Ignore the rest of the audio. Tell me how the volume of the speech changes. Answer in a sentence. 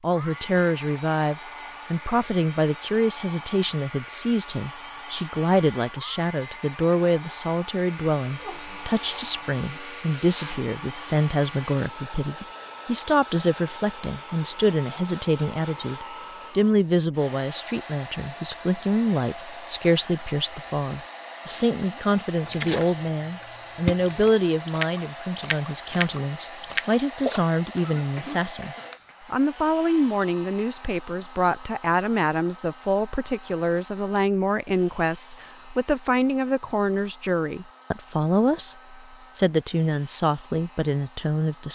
The loudness of the speech stays about the same.